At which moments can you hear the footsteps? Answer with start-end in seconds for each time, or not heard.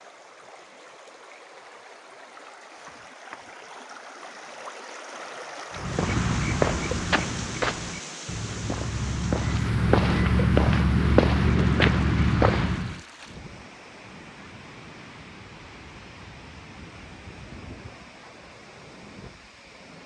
5.8-13.0.